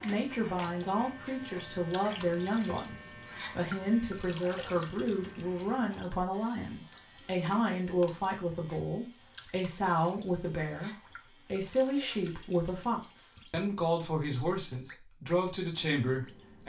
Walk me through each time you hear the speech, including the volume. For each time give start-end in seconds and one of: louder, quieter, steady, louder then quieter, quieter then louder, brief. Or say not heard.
0.0-16.6 steady.